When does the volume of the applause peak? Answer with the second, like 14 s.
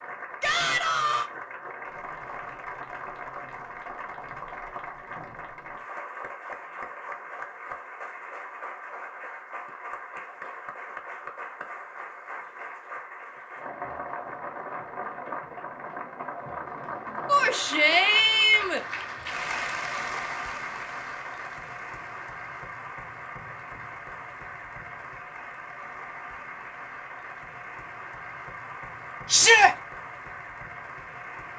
20 s.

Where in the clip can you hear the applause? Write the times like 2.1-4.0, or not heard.
0.0-31.5.